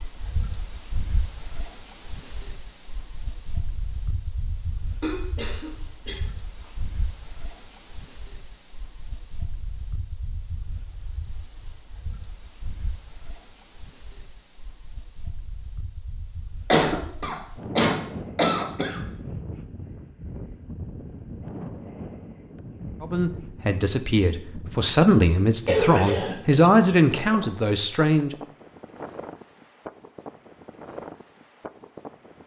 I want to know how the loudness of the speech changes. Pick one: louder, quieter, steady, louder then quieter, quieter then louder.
louder then quieter.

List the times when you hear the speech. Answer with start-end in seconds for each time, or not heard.
23.0-28.4.